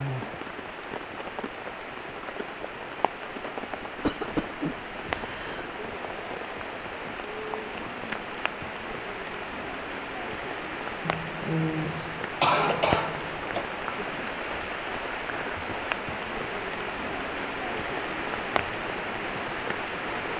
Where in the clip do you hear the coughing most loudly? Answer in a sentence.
The volume of the coughing peaks at 13 seconds.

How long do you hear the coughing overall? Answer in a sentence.
The coughing can be heard for 4 seconds in total.